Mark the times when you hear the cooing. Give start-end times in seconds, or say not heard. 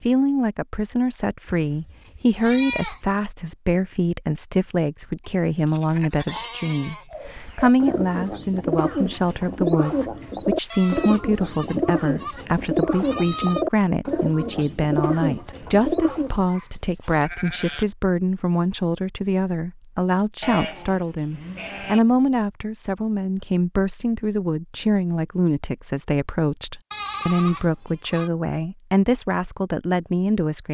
7.1-16.4.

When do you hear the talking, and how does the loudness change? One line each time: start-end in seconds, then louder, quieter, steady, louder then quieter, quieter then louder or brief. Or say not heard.
0.0-30.6 steady.